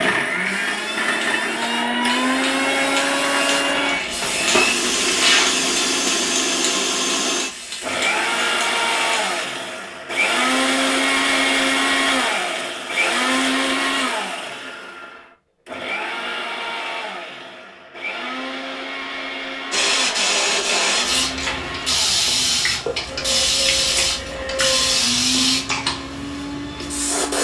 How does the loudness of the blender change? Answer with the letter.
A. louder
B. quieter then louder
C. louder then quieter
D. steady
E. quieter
E.